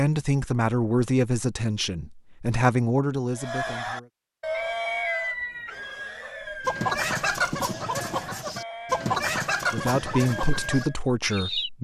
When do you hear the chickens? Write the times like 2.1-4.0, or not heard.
4.5-11.7.